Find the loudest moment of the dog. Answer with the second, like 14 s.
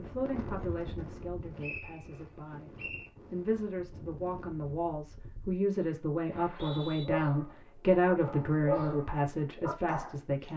9 s.